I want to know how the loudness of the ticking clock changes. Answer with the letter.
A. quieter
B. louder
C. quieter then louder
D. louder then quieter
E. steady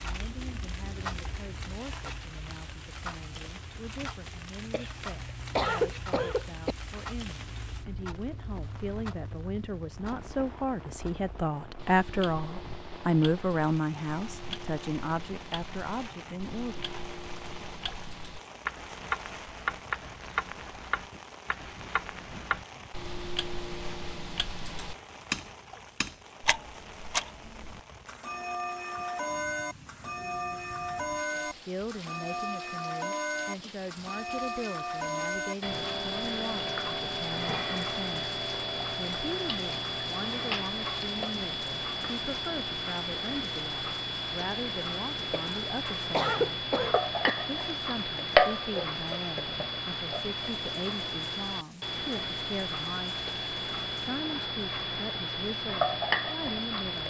B.